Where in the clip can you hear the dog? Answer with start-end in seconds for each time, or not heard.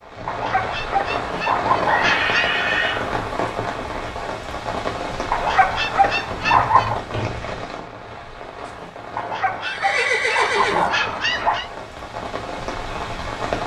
0.2-2.5, 5.3-7.0, 9.2-11.7.